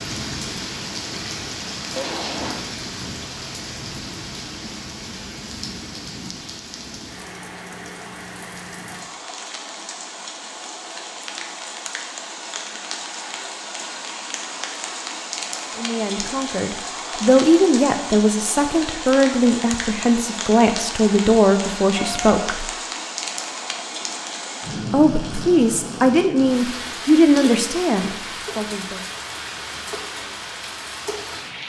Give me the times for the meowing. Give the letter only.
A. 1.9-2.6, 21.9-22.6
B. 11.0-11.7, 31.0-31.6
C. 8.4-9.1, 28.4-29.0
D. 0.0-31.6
A.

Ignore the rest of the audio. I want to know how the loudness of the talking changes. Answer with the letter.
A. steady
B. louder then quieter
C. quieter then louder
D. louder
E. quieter
A.